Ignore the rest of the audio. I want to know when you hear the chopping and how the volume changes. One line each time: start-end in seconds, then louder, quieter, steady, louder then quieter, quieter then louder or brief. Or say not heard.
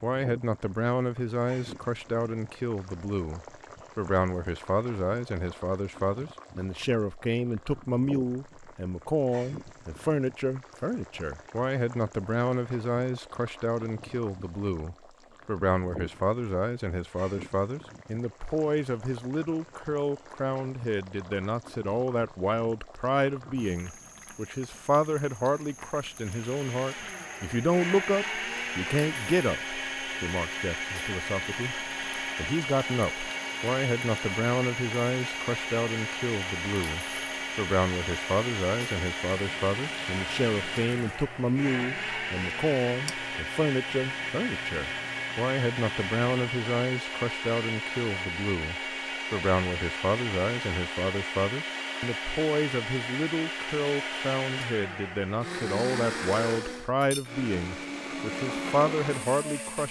not heard.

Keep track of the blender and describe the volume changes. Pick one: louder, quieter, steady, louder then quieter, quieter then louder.
steady.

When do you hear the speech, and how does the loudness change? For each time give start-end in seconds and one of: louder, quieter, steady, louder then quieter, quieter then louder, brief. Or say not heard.
0.0-59.8 steady.